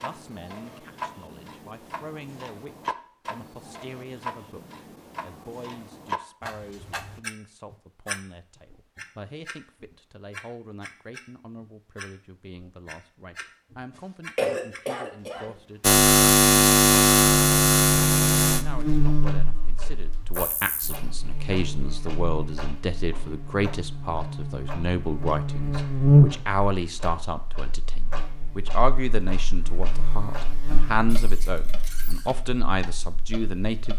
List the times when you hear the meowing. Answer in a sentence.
You can't hear the meowing here.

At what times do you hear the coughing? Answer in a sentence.
The coughing can be heard from 14.3 to 15.6 s.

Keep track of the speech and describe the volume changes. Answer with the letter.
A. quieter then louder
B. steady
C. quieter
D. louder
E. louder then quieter
D.